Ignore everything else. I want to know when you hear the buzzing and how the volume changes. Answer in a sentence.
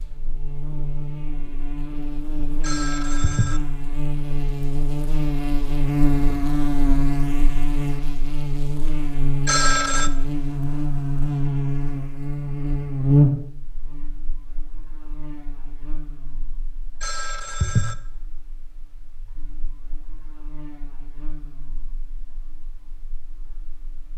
You can hear the buzzing from 0.0 to 24.1 s, getting louder then quieter.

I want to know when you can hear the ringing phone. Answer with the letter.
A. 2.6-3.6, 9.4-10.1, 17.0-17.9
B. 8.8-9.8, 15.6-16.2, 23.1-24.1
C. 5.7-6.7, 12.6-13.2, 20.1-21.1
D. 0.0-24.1
A.